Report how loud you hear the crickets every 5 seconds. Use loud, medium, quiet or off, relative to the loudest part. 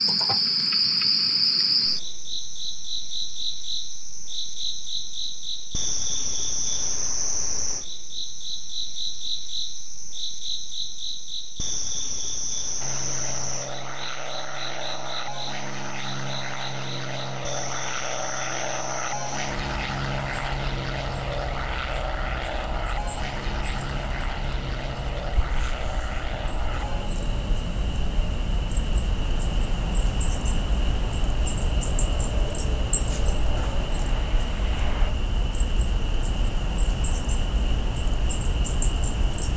loud, medium, medium, quiet, quiet, medium, medium, medium.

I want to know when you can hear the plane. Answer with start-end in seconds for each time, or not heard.
12.8-35.1.